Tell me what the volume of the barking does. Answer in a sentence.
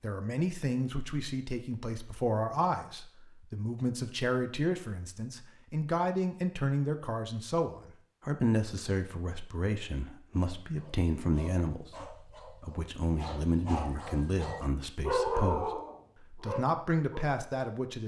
The loudness of the barking goes up, then down.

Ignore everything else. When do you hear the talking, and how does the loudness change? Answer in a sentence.
The talking can be heard from 0.0 to 18.0 s, at a steady volume.